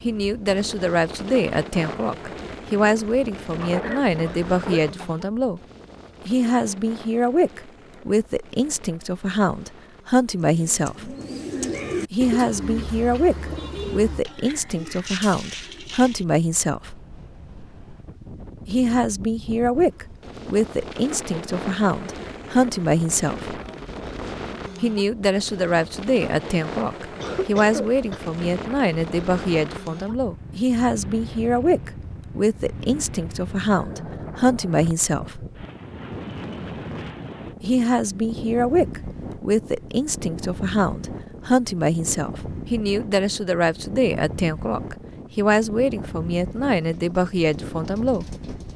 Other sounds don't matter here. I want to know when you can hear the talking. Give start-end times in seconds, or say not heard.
0.0-5.6, 6.2-11.2, 12.1-17.0, 18.6-23.6, 24.8-35.5, 37.6-48.2.